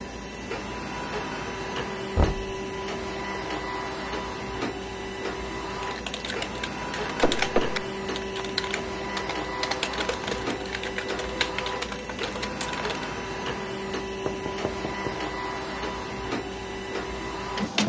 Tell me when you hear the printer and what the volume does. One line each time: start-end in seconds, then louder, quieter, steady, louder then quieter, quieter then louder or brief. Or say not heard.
0.0-17.8 steady.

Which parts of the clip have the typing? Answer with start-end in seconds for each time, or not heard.
5.8-13.2.